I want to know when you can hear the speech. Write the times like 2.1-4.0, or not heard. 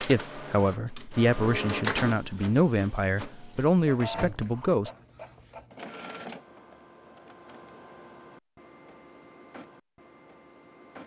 0.0-4.9.